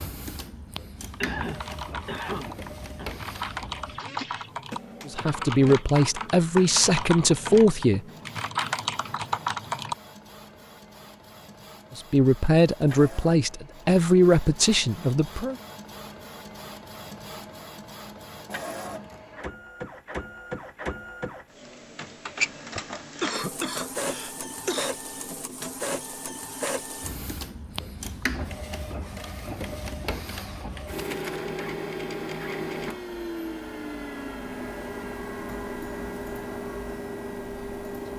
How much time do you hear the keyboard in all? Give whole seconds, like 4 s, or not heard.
9 s.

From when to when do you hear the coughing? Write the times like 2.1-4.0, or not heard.
1.2-3.1, 22.8-24.9.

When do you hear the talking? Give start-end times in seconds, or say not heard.
5.0-8.0, 11.9-15.6.